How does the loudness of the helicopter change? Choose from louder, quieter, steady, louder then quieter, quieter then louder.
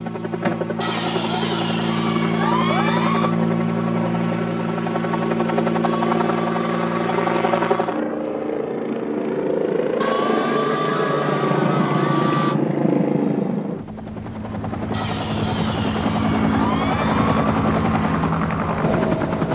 steady.